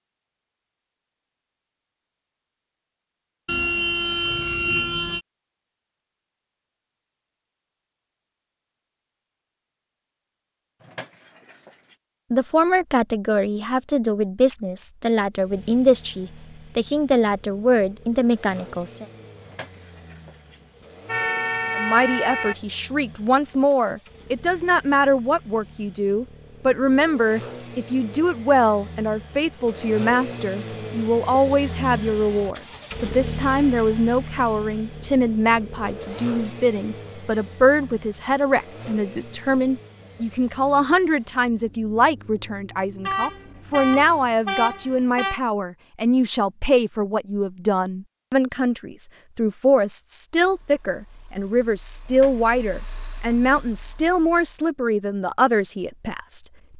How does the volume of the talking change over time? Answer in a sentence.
The volume of the talking stays about the same.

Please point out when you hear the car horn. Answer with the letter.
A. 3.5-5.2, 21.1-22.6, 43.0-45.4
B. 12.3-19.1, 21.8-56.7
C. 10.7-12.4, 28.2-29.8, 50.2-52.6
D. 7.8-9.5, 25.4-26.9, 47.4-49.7
A.